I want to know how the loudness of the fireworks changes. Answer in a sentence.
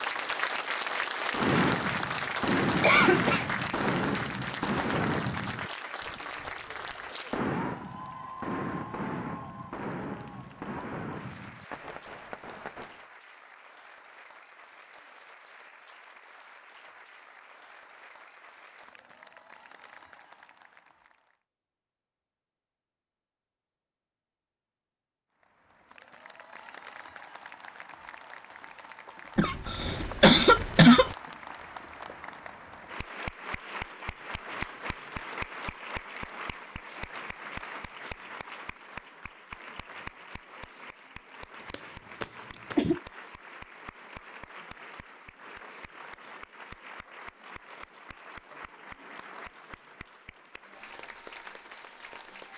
The volume of the fireworks goes down.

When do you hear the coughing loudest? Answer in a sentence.
The loudest moment of the coughing is at 31 seconds.